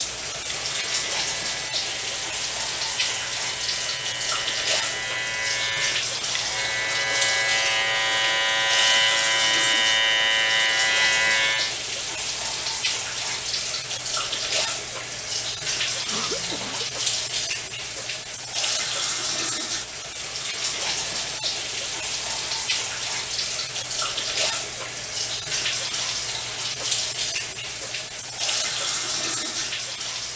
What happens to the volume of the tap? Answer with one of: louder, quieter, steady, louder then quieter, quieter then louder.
steady.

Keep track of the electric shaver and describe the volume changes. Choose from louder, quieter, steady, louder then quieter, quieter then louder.
louder.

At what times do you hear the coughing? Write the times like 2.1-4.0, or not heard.
16.1-16.9.